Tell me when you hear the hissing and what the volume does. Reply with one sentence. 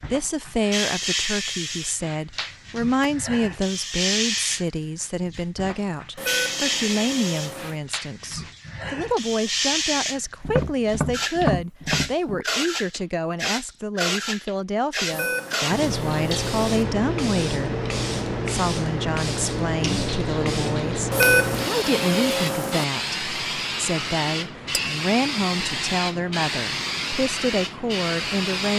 The hissing can be heard from 0.0 to 28.7 s, at a steady volume.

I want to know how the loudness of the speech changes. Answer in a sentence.
The loudness of the speech stays about the same.